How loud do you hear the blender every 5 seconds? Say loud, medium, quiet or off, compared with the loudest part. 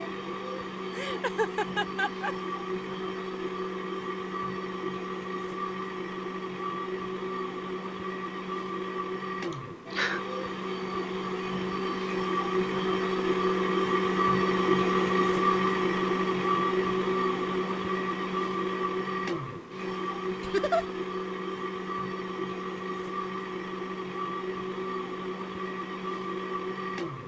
medium, medium, loud, loud, medium, medium.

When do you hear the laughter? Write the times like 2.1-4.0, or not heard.
0.9-2.4, 9.5-10.2, 20.4-20.9.